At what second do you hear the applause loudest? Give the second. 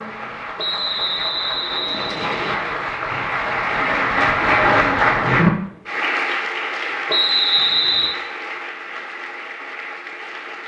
5 s.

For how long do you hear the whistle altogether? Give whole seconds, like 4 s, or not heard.
3 s.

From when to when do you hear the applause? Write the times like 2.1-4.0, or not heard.
0.0-10.6.